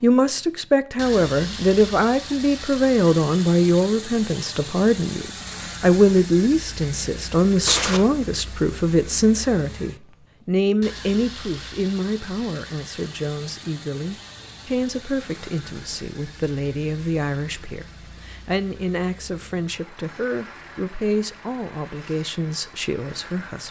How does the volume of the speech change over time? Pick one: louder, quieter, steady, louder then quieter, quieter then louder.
quieter.